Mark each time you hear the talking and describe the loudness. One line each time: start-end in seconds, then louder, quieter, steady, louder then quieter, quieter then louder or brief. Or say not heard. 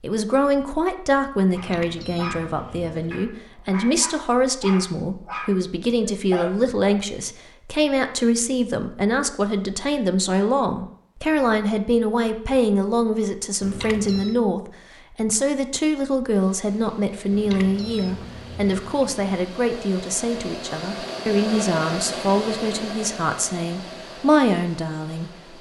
0.0-25.5 steady.